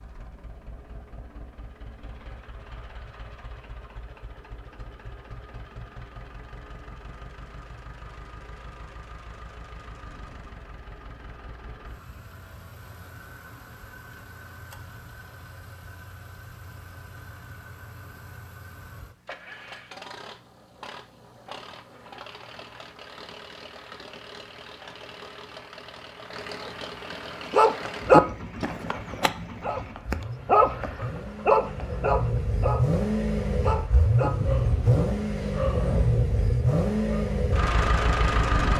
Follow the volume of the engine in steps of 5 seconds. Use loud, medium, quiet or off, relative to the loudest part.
quiet, quiet, quiet, quiet, quiet, quiet, loud, loud.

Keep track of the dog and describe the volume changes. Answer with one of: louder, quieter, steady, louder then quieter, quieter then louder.
quieter.